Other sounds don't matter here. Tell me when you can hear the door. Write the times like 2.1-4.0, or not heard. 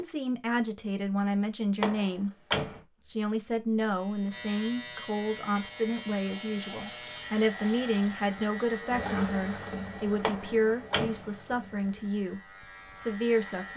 1.8-2.8, 10.2-11.3.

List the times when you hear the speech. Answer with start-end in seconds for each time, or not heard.
0.0-2.3, 3.0-13.7.